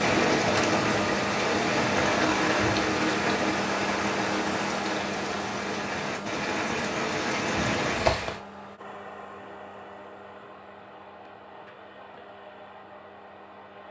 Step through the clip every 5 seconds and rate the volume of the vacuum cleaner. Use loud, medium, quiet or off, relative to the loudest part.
loud, medium, quiet.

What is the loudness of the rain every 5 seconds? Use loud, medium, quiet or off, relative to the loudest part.
loud, loud, off.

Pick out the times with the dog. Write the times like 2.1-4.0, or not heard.
not heard.